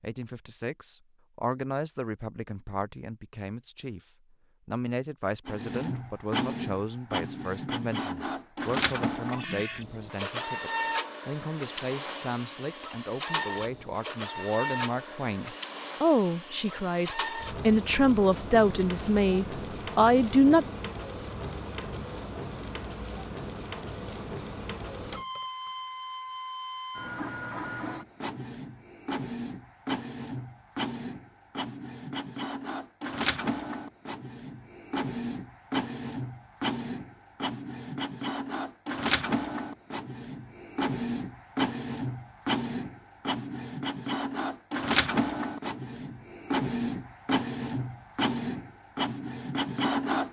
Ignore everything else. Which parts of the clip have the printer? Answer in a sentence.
The printer can be heard from 5.5 to 50.2 s.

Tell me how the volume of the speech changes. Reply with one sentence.
The volume of the speech goes up.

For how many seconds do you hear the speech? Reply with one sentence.
You can hear the speech for 21 seconds altogether.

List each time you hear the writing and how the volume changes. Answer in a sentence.
You can't hear the writing here.